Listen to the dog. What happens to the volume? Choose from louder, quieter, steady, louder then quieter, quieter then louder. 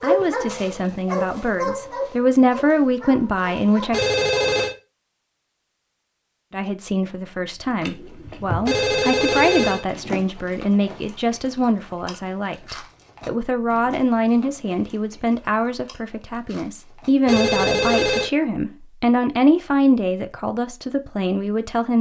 louder then quieter.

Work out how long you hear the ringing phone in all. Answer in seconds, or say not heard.
3 s.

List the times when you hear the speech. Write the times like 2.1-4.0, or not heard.
0.0-4.0, 6.5-21.9.